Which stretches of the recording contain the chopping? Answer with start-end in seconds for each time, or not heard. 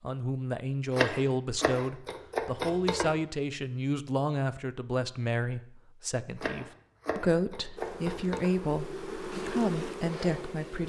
0.9-3.1, 6.3-8.5.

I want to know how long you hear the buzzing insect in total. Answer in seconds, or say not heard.
3 s.